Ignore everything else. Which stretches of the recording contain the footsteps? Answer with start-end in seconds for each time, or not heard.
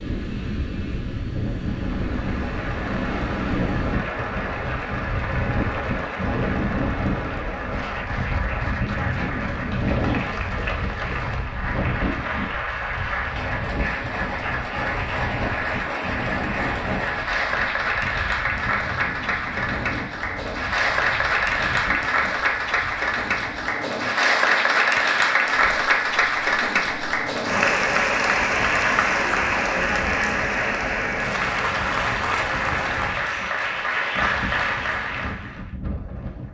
not heard.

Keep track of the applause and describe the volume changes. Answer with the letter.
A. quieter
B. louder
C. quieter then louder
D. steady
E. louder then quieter
B.